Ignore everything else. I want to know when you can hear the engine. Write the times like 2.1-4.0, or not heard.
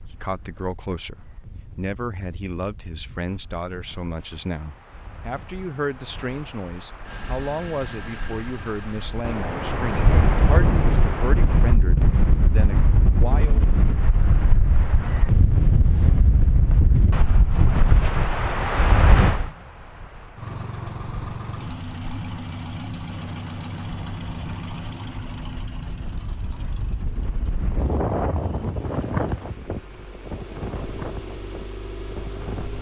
7.0-10.5, 20.4-32.7.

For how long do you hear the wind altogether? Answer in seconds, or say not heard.
33 s.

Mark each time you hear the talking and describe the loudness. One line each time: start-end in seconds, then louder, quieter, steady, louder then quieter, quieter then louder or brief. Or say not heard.
0.0-13.6 steady.